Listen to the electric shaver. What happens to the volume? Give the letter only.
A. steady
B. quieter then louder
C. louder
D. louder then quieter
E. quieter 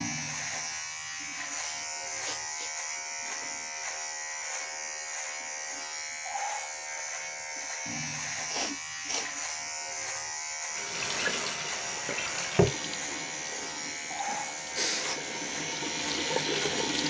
A.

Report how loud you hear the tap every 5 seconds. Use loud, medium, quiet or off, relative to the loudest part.
off, off, loud, loud.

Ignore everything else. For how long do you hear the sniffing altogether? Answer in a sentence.
You can hear the sniffing for 3 seconds altogether.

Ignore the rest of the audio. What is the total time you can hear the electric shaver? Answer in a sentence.
The electric shaver can be heard for 17 seconds in total.